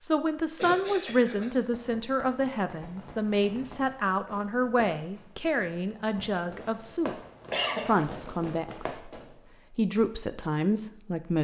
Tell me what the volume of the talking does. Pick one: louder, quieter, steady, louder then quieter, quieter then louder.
steady.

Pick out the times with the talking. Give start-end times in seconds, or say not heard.
0.0-7.2, 7.8-11.3.